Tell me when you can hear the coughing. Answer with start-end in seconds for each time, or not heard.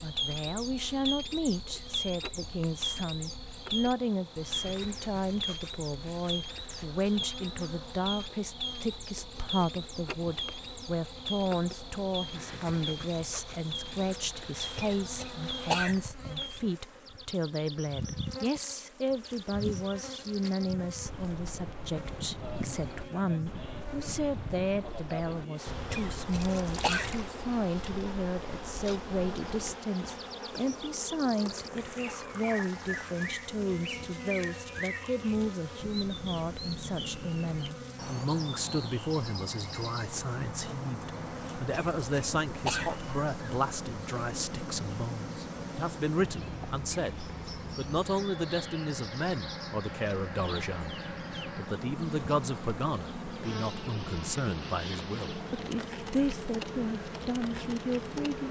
14.8-16.0, 25.9-27.1, 41.7-43.0.